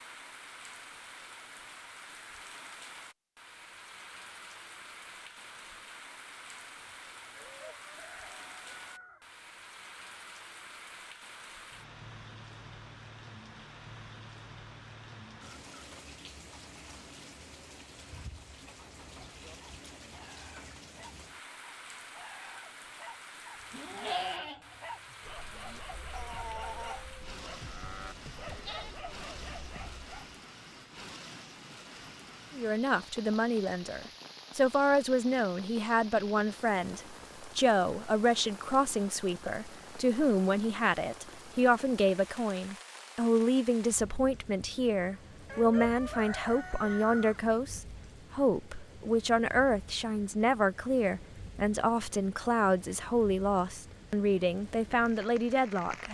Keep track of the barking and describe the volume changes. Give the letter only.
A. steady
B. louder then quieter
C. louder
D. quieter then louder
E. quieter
C.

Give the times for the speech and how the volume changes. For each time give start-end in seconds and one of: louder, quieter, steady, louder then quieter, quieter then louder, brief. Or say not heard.
32.5-56.1 steady.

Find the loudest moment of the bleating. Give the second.
24 s.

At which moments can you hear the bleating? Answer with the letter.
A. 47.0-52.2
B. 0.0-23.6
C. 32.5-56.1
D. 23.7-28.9
D.